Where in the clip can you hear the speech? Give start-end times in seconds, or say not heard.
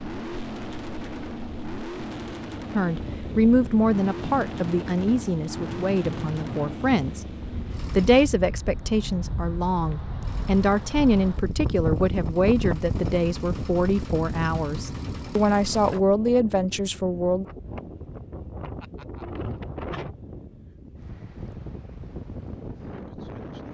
2.8-7.2, 8.0-17.4.